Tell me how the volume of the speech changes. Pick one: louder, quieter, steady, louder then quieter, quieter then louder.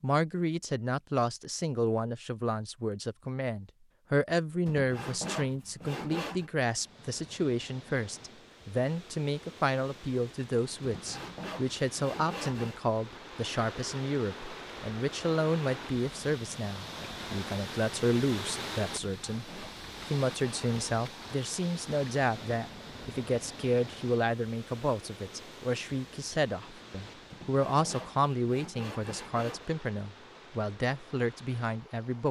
steady.